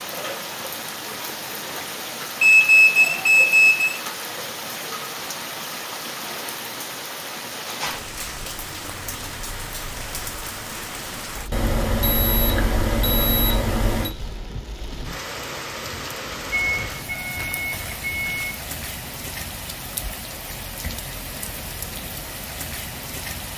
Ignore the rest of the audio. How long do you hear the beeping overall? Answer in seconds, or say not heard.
6 s.